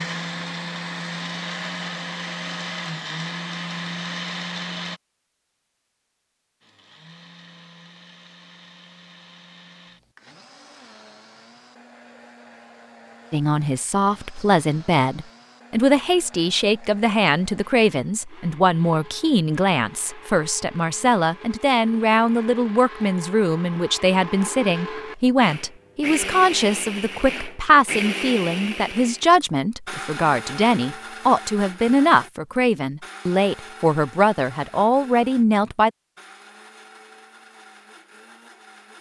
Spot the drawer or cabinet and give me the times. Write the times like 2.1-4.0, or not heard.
not heard.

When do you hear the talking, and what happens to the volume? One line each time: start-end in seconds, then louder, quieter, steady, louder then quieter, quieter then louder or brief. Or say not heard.
13.3-35.9 steady.